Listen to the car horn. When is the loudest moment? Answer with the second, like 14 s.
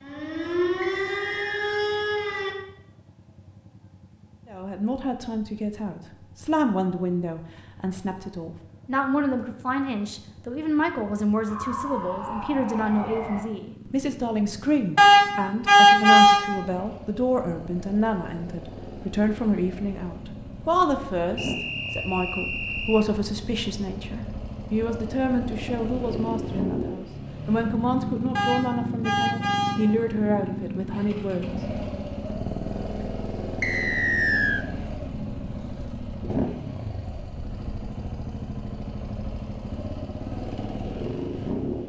16 s.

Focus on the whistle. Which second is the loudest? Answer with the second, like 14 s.
34 s.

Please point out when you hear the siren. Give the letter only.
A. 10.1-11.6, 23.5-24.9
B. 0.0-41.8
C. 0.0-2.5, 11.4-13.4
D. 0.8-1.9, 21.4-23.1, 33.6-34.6
C.